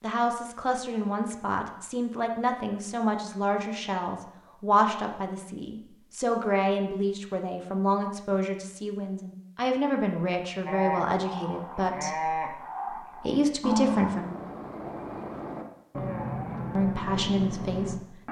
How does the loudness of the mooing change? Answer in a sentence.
The loudness of the mooing stays about the same.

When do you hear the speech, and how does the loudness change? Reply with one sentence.
You can hear the speech from 0.0 to 14.3 s, at a steady volume; and briefly from 16.8 to 18.2 s.